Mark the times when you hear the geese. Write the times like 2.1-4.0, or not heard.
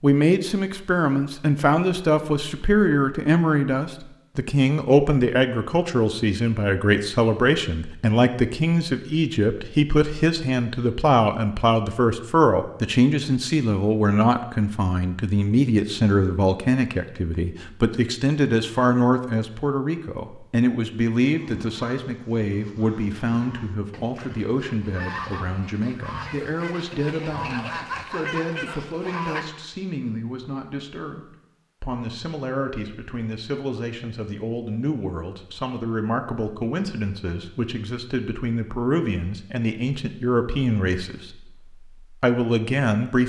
21.3-29.6.